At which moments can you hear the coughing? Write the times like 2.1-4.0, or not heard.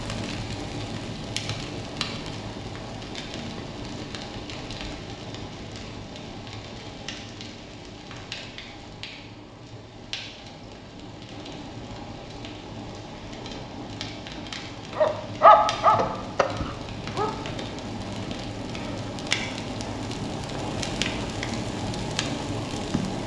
not heard.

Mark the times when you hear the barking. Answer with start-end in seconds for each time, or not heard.
14.9-17.4.